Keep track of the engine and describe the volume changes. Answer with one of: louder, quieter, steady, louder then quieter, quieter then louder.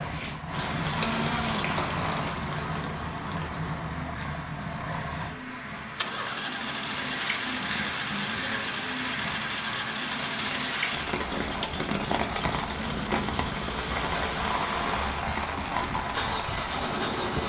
steady.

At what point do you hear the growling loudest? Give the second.
1 s.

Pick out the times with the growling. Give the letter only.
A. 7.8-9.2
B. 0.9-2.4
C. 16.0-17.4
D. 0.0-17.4
B.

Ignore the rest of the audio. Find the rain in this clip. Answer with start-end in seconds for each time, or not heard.
0.0-17.4.